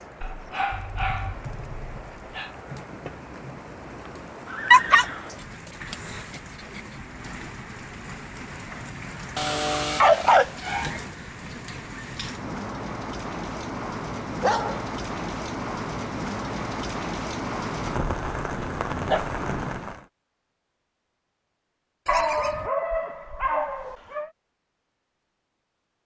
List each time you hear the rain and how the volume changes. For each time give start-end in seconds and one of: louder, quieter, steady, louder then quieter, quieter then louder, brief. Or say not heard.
0.0-20.1 louder.